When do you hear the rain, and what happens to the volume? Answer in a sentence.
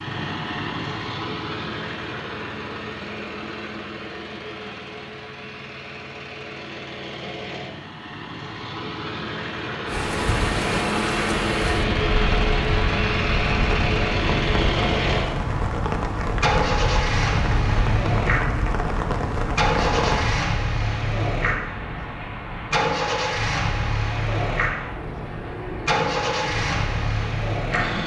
You can hear the rain from 9.8 to 27.8 s, getting quieter.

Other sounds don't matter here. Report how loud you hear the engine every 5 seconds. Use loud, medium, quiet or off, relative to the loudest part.
medium, medium, loud, loud, loud, loud.